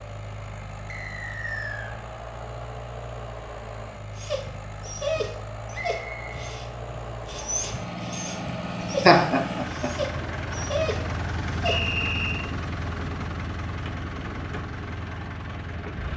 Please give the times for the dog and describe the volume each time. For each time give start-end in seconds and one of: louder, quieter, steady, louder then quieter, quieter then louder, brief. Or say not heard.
4.2-11.8 quieter then louder.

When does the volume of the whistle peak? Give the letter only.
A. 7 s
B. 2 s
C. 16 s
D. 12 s
D.